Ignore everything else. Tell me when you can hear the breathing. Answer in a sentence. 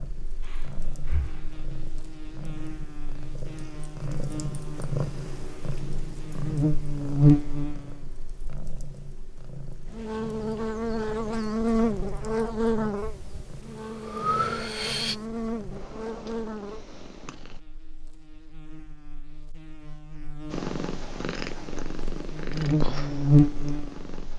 You can hear the breathing from 0.4 to 1.6 s and from 12.9 to 15.2 s.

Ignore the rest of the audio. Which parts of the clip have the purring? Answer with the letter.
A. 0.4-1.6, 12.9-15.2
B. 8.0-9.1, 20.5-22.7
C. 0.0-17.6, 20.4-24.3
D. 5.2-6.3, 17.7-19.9
C.